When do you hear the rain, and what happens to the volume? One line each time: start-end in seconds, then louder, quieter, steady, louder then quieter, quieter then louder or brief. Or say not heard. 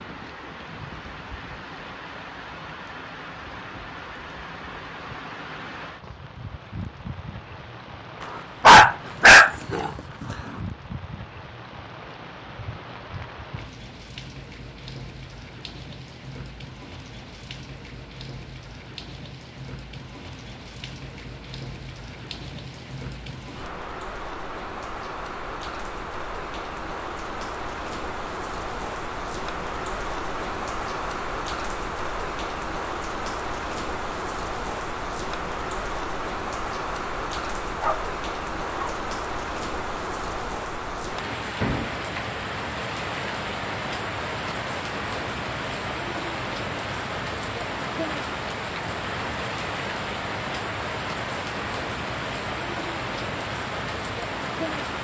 0.0-54.9 louder.